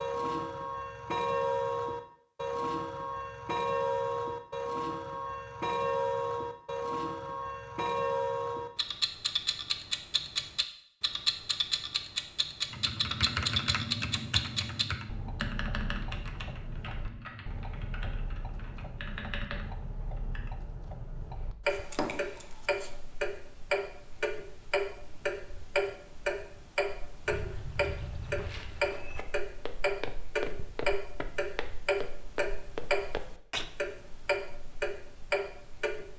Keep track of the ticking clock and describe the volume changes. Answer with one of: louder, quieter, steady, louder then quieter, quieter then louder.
quieter then louder.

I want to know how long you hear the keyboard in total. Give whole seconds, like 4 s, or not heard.
8 s.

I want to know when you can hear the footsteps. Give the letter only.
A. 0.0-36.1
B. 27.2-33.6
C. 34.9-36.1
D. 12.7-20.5
B.